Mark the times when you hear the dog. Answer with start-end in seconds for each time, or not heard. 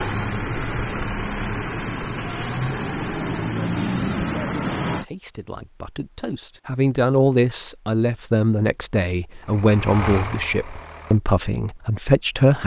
not heard.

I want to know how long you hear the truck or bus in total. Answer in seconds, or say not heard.
7 s.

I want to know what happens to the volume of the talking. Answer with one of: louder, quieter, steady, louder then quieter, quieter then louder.
louder.